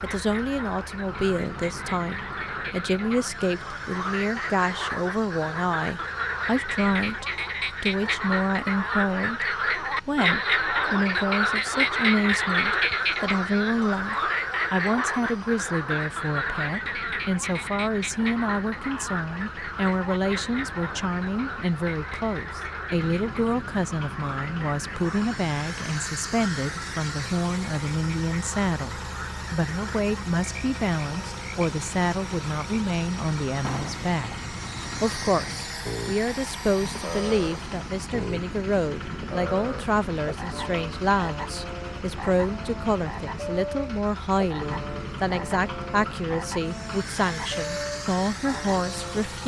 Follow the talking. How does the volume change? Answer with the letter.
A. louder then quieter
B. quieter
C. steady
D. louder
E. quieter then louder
C.